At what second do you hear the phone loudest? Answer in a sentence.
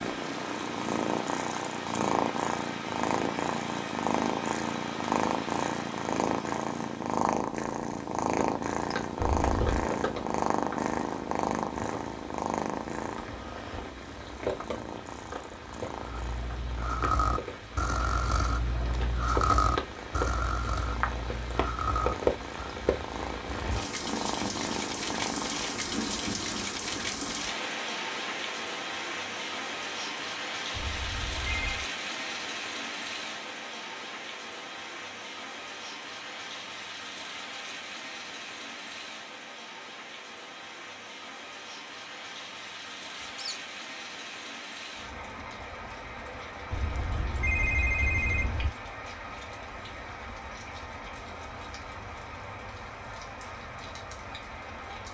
The volume of the phone peaks at 48 seconds.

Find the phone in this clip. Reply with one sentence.
You can hear the phone from 9.4 to 9.8 s, from 30.7 to 31.9 s and from 46.7 to 48.7 s.